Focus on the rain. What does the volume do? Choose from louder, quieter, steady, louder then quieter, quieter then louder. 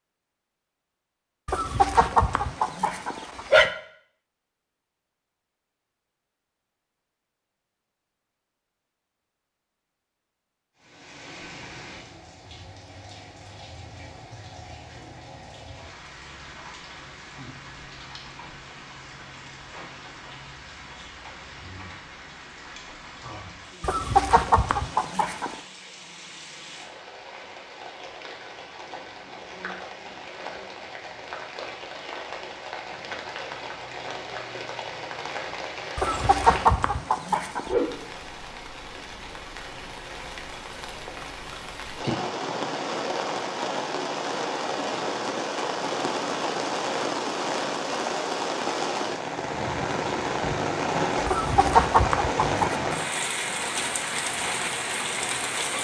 louder.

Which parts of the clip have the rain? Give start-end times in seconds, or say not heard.
10.8-55.7.